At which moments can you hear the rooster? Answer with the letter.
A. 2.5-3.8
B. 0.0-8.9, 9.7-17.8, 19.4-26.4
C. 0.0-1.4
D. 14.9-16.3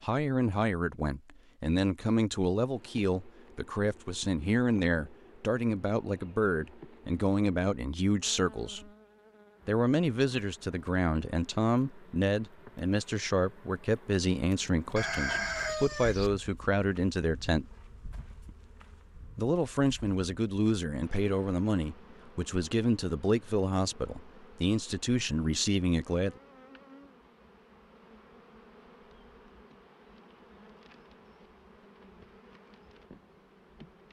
D.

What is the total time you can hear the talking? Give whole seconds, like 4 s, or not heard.
24 s.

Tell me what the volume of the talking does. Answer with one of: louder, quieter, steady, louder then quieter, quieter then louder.
steady.